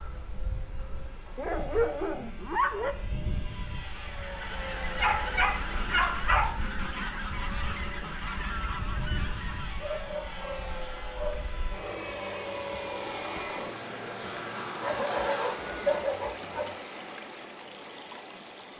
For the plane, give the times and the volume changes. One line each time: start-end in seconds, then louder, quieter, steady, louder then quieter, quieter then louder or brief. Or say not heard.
0.0-16.2 louder.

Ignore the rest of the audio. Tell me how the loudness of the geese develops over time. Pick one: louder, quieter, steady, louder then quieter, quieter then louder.
steady.